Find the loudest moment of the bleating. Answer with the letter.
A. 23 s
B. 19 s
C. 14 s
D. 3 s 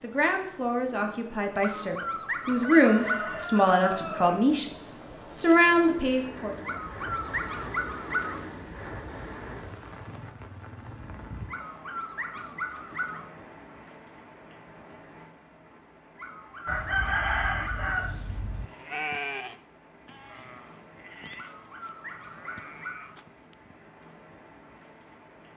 B.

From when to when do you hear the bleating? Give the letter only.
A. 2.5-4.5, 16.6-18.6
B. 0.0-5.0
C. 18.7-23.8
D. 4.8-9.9
C.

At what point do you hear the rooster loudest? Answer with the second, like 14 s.
17 s.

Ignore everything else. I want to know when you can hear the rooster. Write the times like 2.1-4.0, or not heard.
2.5-4.5, 16.6-18.6.